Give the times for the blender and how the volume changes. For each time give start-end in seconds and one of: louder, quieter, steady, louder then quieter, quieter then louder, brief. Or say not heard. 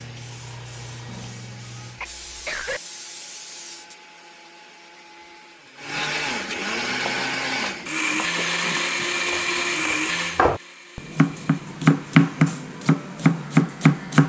0.0-14.2 louder then quieter.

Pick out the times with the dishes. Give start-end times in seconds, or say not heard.
not heard.